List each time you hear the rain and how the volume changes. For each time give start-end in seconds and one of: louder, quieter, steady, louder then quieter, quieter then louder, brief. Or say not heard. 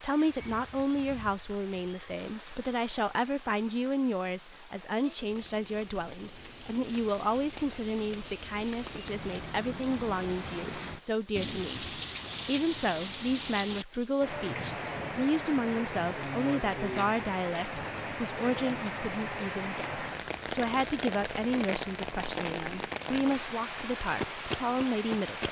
0.0-25.4 louder.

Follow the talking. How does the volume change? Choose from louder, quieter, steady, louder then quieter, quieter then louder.
steady.